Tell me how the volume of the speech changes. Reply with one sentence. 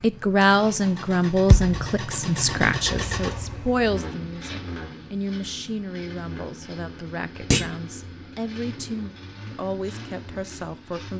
The loudness of the speech goes down.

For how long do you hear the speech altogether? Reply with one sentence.
You can hear the speech for 11 seconds altogether.